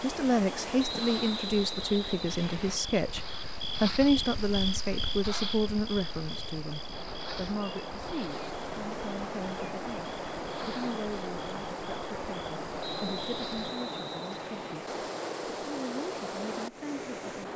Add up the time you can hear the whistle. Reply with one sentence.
You can hear the whistle for 4 seconds altogether.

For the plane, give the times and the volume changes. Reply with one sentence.
You can't hear the plane here.